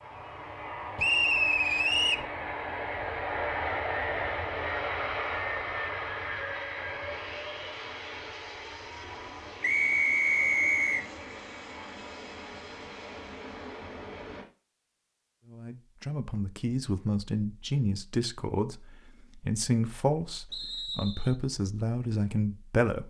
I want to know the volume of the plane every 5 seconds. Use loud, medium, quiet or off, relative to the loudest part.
loud, loud, medium, off, off.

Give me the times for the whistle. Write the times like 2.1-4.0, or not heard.
0.9-2.2, 9.6-11.0, 20.5-21.4.